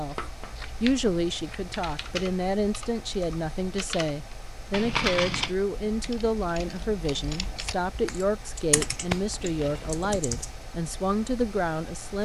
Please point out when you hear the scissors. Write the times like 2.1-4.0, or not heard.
0.1-1.8, 4.7-5.5, 8.8-10.2.